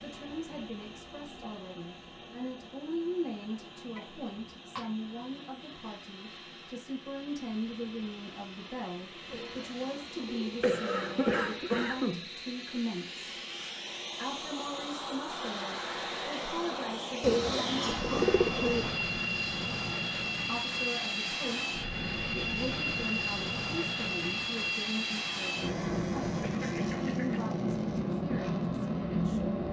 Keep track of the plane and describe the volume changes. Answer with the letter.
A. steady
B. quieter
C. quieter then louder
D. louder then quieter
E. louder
E.